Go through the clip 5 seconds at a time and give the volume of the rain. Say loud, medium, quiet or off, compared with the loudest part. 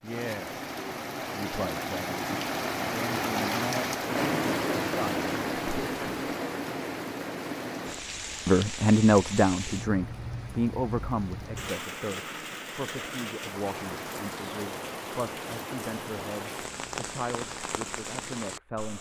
loud, loud, medium, medium.